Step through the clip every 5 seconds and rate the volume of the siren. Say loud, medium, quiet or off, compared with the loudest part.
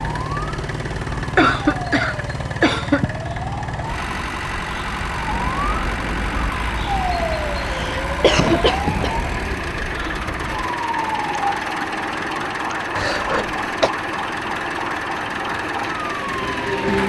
medium, loud, loud, loud.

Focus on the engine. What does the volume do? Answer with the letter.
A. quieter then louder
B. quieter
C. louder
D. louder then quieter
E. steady
E.